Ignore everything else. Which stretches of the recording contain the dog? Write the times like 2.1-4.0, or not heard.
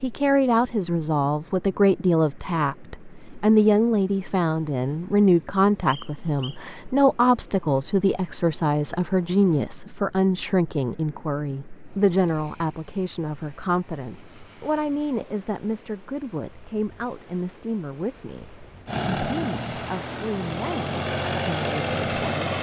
not heard.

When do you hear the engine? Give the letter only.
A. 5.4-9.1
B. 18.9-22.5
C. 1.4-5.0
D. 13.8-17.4
B.